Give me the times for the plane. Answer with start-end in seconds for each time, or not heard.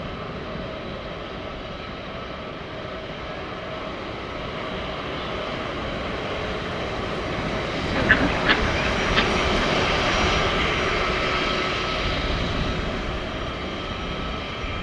0.0-14.7.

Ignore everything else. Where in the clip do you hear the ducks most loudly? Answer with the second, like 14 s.
8 s.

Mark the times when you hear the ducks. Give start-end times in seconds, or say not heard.
8.0-10.3.